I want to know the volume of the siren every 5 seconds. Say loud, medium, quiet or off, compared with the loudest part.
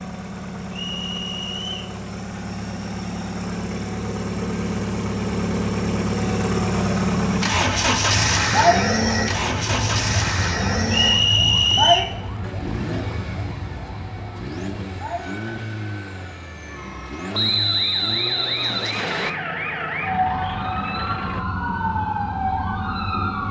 off, loud, loud, medium, loud.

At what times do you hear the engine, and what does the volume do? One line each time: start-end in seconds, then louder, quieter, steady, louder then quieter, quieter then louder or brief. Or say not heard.
0.0-21.4 louder then quieter.